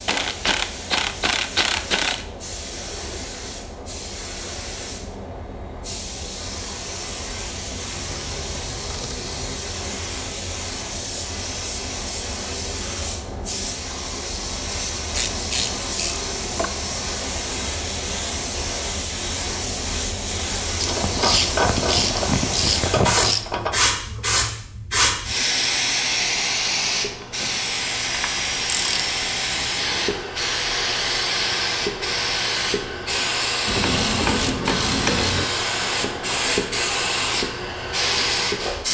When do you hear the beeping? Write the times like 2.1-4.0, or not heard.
not heard.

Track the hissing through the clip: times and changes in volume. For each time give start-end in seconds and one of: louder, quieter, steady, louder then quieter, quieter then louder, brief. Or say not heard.
0.0-38.8 louder.